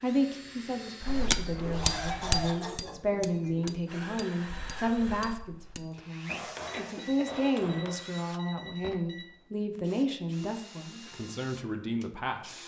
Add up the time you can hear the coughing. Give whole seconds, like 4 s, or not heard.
3 s.